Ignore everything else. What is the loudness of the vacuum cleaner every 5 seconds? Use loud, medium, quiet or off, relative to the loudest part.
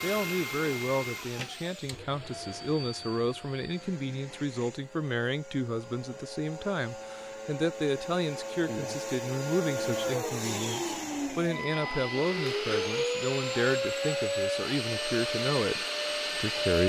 medium, medium, loud, loud.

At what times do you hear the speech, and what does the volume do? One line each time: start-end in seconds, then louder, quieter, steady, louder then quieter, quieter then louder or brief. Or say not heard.
0.0-16.8 steady.